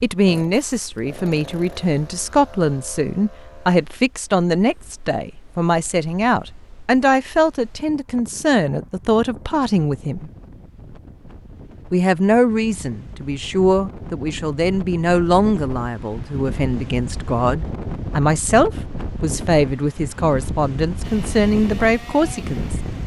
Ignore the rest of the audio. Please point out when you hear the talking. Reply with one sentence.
You can hear the talking from 0.0 to 10.3 s and from 11.9 to 22.8 s.